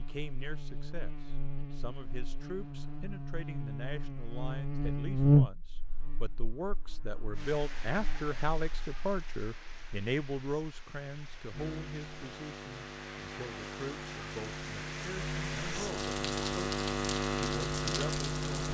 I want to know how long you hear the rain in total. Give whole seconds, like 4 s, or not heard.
11 s.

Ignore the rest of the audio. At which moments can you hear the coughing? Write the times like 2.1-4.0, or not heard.
not heard.